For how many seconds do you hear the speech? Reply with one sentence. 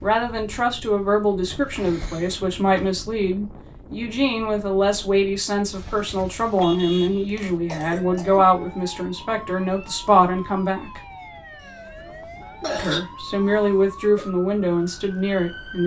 You can hear the speech for 14 seconds altogether.